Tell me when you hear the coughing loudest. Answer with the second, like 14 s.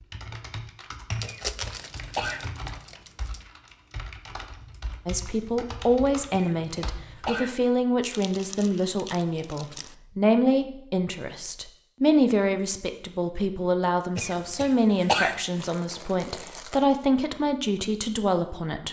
15 s.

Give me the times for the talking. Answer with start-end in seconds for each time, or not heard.
5.0-18.8.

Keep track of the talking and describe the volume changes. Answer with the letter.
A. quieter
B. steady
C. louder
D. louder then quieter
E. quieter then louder
B.